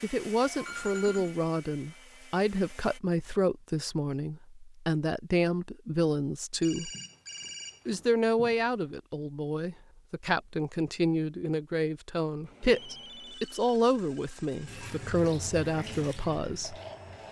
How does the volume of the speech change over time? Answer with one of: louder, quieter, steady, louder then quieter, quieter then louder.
steady.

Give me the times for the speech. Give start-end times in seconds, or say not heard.
0.0-6.9, 7.8-16.8.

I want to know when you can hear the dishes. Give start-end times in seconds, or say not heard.
not heard.